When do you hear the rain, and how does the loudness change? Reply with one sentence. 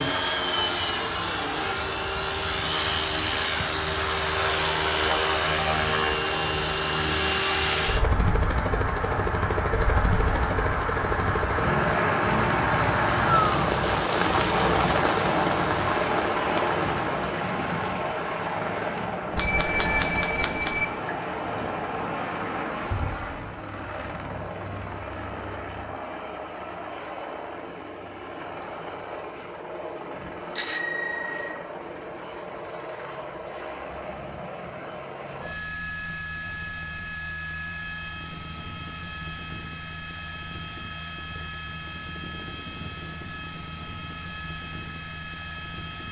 The rain can be heard from 0.0 to 23.4 s, getting louder then quieter.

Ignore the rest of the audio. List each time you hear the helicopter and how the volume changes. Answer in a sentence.
The helicopter can be heard from 0.0 to 46.0 s, getting quieter.